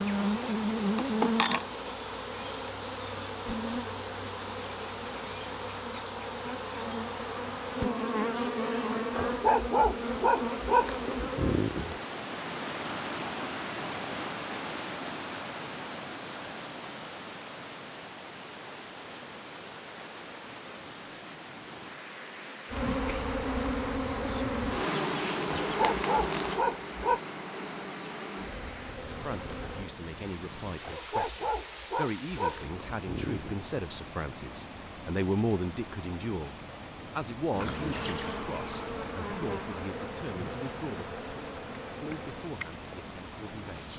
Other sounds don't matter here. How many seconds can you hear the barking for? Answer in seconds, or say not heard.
7 s.